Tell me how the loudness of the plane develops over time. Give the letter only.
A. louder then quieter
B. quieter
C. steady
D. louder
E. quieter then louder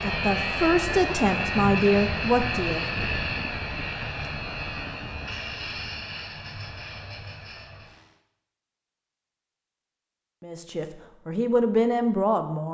B.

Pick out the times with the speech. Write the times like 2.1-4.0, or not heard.
0.0-3.0, 10.4-12.6.